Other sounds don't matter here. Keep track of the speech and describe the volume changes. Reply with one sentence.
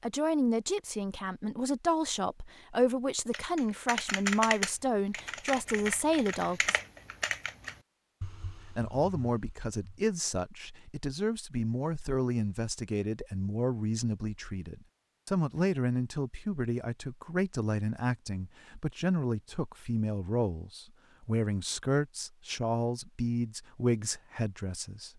The volume of the speech stays about the same.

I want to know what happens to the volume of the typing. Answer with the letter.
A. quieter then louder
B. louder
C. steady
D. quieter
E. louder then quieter
D.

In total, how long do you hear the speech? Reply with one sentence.
The speech can be heard for 23 seconds in total.